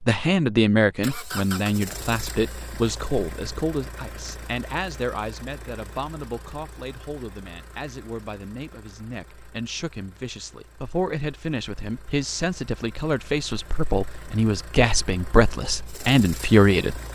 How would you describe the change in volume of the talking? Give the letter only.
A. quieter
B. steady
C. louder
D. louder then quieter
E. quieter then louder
E.